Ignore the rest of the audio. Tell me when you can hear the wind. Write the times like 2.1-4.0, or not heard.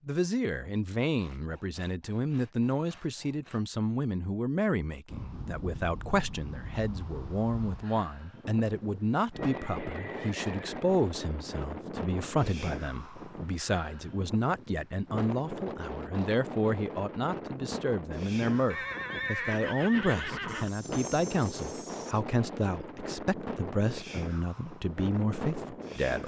5.0-26.2.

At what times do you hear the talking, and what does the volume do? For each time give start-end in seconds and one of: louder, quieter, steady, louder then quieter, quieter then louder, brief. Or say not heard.
0.1-26.2 steady.